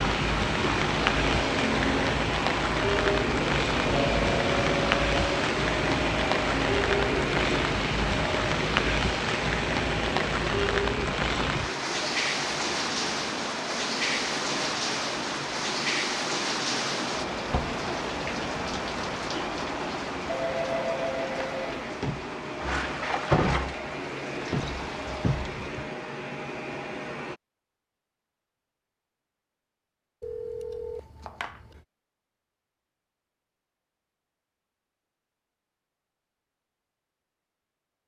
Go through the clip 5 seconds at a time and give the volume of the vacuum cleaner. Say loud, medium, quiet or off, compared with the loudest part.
loud, loud, medium, medium, medium, medium, off, off.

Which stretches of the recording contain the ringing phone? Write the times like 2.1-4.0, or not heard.
3.9-5.4, 20.2-21.7, 30.2-31.8.